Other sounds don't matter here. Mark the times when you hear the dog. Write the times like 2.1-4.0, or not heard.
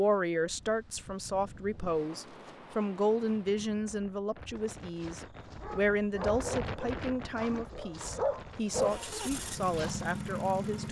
4.5-10.1.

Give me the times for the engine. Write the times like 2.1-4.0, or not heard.
8.7-10.8.